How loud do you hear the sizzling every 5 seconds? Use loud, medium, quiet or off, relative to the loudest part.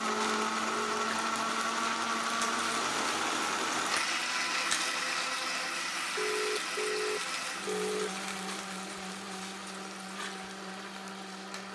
loud, loud, medium.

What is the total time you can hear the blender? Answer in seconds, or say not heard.
12 s.